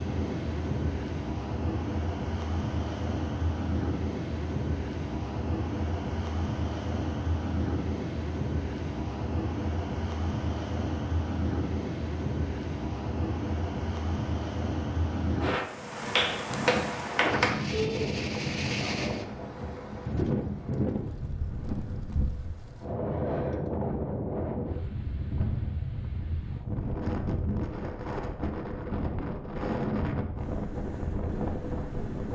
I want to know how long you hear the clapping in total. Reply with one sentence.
The clapping can be heard for 2 seconds in total.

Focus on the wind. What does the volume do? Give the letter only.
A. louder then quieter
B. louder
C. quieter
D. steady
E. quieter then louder
D.